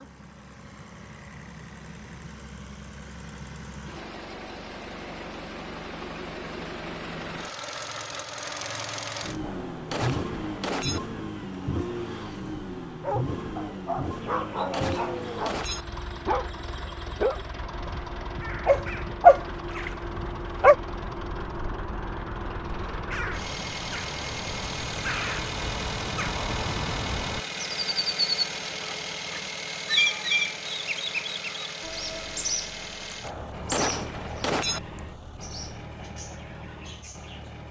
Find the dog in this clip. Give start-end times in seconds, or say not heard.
13.0-20.8.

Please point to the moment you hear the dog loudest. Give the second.
19 s.